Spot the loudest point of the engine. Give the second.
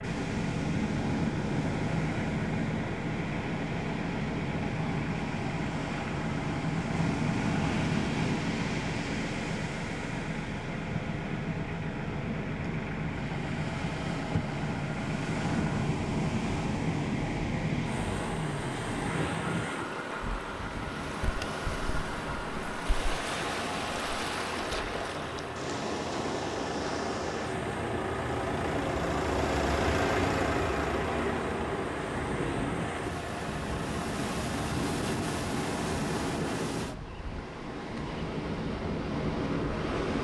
30 s.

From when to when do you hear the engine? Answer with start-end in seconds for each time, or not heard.
0.0-36.6.